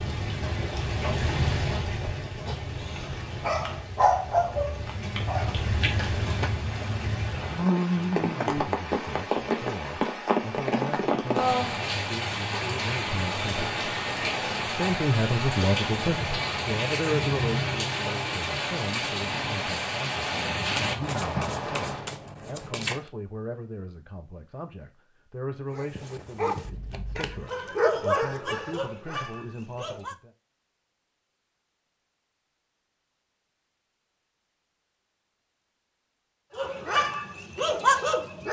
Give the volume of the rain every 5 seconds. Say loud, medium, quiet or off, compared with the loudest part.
medium, loud, loud, loud, loud, off, off, off.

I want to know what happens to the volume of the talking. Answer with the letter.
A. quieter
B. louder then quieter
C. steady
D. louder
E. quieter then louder
B.